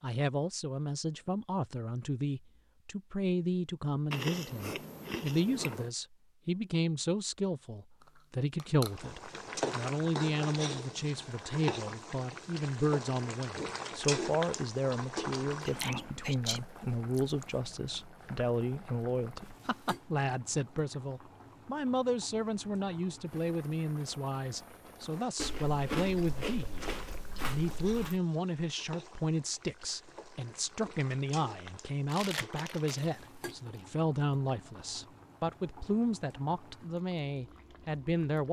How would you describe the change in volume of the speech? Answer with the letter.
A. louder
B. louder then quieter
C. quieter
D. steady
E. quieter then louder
D.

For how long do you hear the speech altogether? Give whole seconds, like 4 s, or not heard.
38 s.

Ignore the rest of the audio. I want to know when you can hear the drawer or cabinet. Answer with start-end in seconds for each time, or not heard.
not heard.